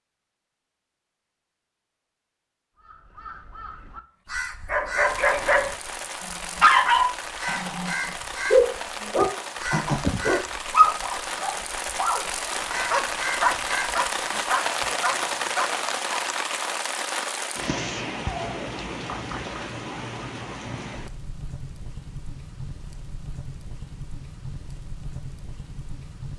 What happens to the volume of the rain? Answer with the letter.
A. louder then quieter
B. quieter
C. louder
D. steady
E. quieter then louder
A.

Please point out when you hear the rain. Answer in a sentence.
The rain can be heard from 5.0 to 26.3 s.